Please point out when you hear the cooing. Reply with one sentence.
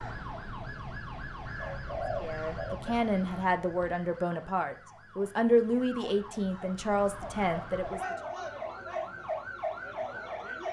The cooing can be heard from 1.6 to 4.0 s.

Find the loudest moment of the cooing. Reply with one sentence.
The volume of the cooing peaks at 2 seconds.